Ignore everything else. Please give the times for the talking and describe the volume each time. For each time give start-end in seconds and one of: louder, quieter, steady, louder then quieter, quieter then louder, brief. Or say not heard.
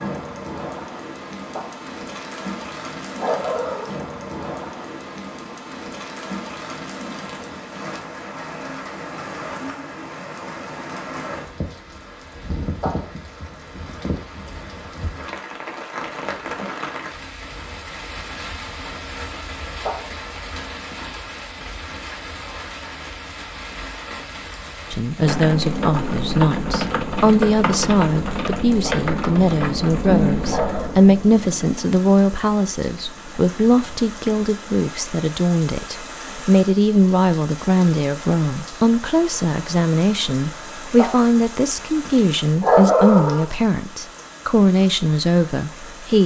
24.9-46.2 steady.